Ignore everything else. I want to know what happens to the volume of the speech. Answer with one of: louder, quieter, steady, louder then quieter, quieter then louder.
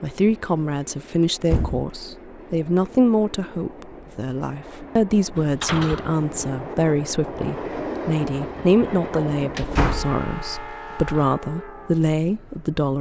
steady.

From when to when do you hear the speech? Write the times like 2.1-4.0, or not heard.
0.0-12.9.